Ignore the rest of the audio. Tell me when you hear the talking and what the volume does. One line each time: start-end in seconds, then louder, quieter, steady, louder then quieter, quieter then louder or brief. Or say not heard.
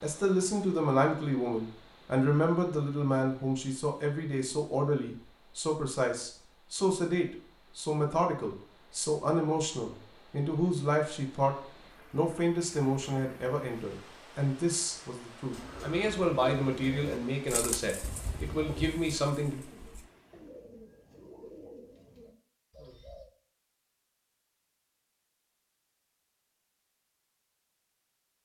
0.0-19.6 steady.